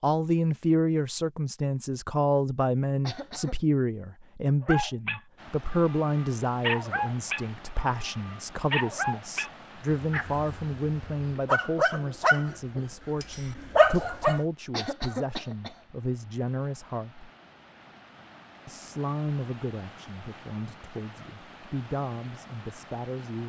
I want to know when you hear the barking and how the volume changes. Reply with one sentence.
The barking can be heard from 4.6 to 14.4 s, getting louder.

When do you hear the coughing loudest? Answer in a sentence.
The volume of the coughing peaks at 15 seconds.